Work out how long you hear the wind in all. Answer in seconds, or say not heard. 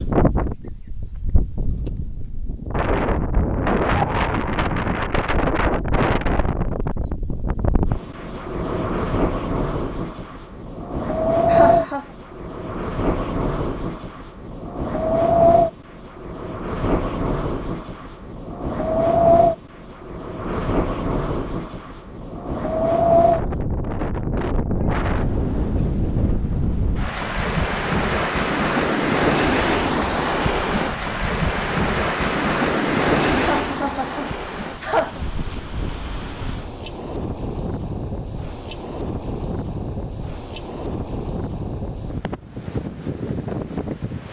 44 s.